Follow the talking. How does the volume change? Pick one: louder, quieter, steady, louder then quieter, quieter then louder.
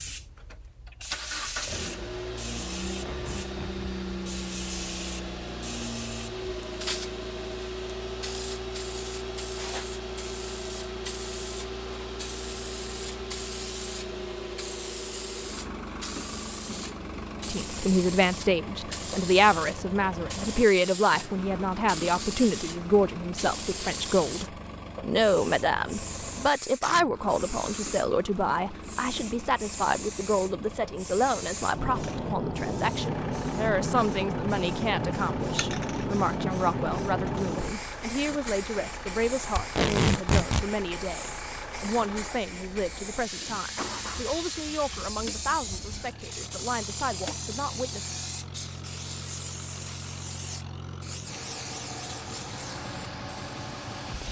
quieter.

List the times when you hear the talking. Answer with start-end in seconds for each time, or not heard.
17.4-48.1.